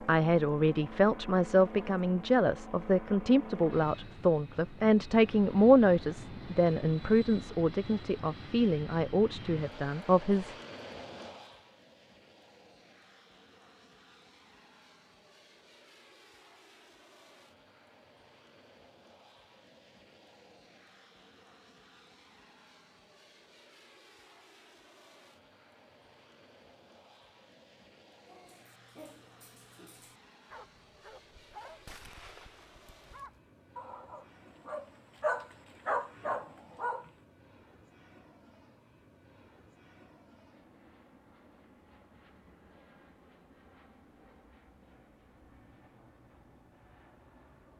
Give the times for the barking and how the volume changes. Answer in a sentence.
The barking can be heard from 28.2 to 37.1 s, getting louder.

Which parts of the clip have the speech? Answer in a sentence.
The speech can be heard from 0.1 to 10.6 s.